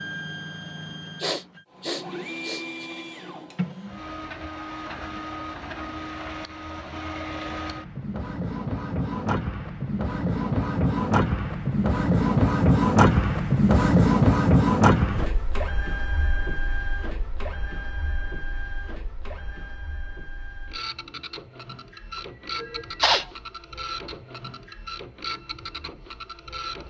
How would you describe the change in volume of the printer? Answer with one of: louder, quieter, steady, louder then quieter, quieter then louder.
louder then quieter.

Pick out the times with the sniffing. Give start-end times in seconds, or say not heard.
1.2-2.9, 22.6-23.2.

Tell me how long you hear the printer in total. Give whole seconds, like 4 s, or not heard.
27 s.